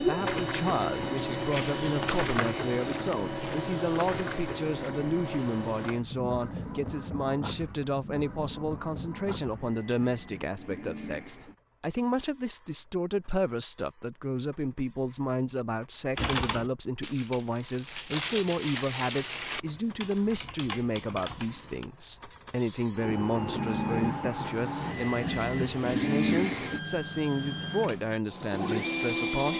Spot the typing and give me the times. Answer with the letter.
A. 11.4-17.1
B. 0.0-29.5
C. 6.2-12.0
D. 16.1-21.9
D.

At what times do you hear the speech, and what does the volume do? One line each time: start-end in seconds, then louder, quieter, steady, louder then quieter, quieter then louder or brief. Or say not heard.
0.0-29.5 steady.